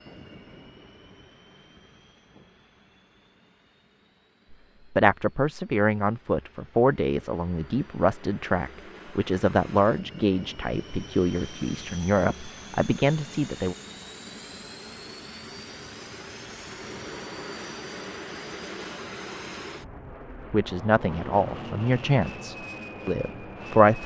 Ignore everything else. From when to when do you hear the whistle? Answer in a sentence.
You can't hear the whistle here.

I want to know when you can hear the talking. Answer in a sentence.
The talking can be heard from 4.5 to 13.8 s and from 20.5 to 24.0 s.